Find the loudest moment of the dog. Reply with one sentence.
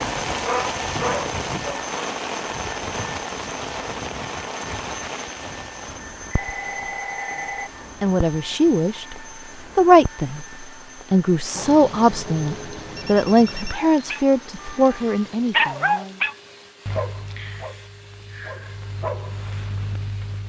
The volume of the dog peaks at 16 seconds.